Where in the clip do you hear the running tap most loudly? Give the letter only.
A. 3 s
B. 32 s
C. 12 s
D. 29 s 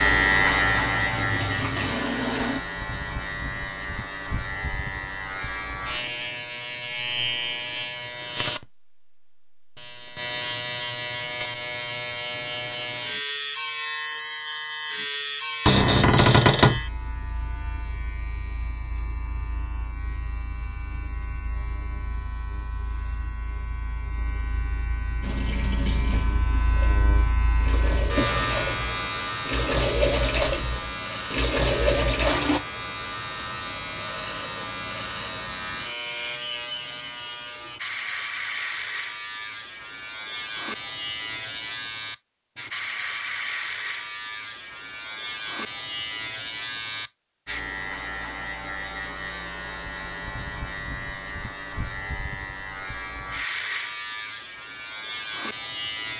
B.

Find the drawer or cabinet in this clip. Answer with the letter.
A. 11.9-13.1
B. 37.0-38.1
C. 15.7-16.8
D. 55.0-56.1
C.